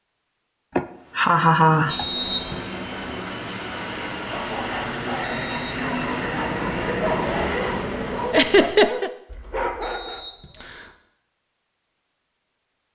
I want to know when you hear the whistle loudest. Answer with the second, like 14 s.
2 s.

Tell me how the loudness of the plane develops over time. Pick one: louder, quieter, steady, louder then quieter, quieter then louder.
louder.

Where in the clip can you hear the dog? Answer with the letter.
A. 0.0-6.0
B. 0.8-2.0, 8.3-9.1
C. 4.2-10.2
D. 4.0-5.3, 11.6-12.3
C.